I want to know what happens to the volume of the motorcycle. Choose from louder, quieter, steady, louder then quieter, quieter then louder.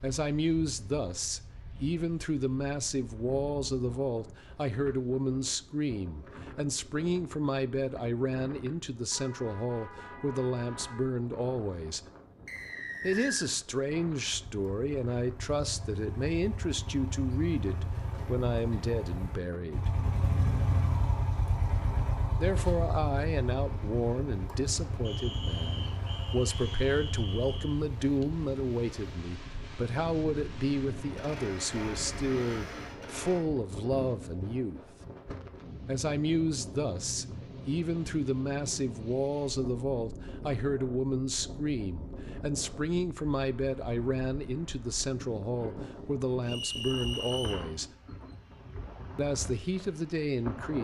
louder then quieter.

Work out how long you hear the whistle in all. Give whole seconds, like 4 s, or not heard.
5 s.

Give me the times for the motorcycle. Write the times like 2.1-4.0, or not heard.
14.2-33.5.